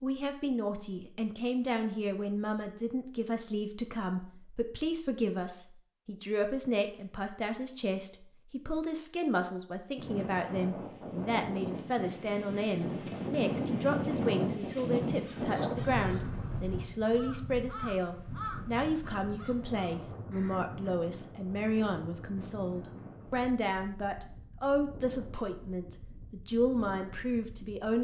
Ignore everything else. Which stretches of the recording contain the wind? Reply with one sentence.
The wind can be heard from 9.9 to 27.9 s.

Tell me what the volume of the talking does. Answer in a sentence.
The volume of the talking stays about the same.